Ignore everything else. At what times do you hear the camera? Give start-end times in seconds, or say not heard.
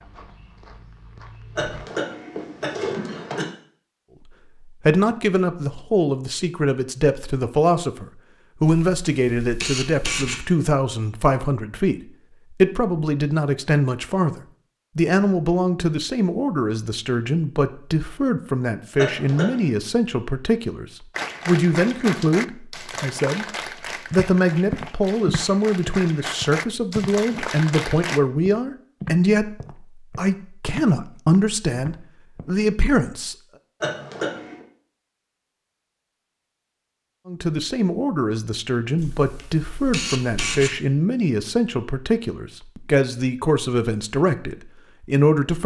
8.7-10.4, 39.0-40.8.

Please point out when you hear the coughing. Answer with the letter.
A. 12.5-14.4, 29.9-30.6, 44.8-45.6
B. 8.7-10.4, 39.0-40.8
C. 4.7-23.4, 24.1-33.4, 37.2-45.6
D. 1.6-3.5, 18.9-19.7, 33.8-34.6
D.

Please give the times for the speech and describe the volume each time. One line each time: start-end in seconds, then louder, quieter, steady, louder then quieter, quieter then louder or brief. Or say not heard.
4.7-23.4 steady
24.1-33.4 steady
37.2-45.6 steady.